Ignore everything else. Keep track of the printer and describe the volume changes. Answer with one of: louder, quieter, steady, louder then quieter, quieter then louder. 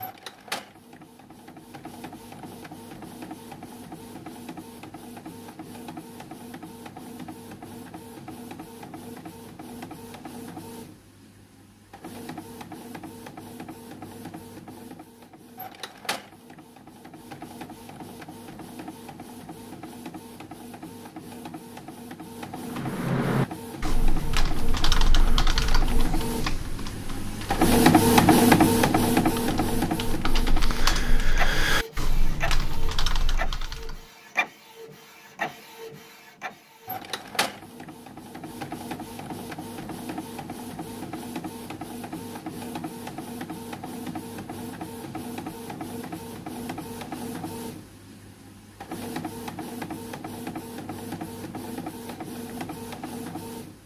louder then quieter.